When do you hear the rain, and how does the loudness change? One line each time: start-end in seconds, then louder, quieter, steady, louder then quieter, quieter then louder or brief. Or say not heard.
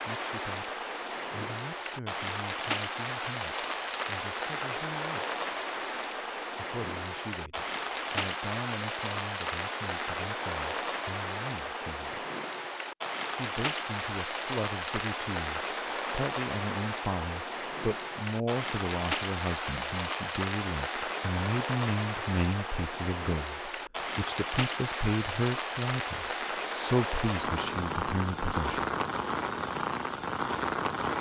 0.0-31.1 steady.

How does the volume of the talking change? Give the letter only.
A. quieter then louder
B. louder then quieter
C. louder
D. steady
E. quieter
C.